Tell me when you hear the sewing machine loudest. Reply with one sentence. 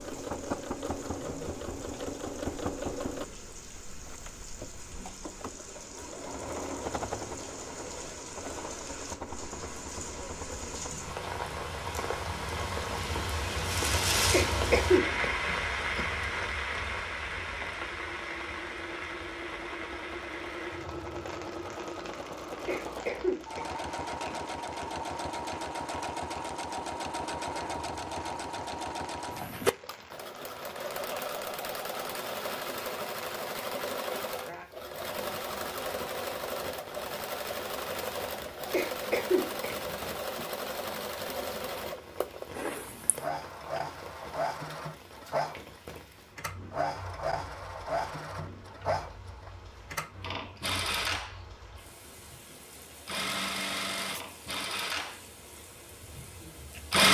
The volume of the sewing machine peaks at 57 seconds.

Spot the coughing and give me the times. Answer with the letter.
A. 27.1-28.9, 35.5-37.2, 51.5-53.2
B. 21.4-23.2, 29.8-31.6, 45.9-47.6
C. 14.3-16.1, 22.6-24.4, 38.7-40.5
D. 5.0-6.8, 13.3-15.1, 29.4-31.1
C.